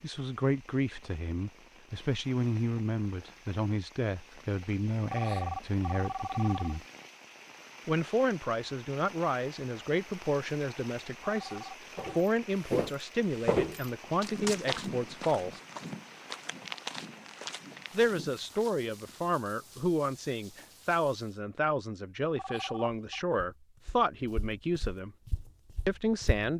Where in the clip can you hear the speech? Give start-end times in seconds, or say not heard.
0.0-6.8, 7.8-15.6, 17.9-25.1, 25.9-26.5.